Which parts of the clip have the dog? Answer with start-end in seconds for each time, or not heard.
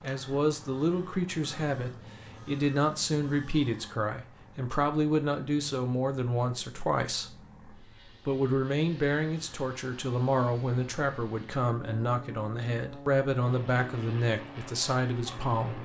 not heard.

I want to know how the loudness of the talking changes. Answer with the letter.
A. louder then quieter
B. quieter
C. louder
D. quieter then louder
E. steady
E.